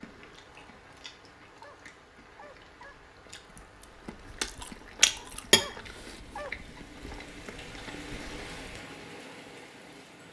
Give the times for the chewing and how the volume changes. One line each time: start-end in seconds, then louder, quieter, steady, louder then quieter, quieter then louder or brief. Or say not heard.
0.0-8.8 louder then quieter.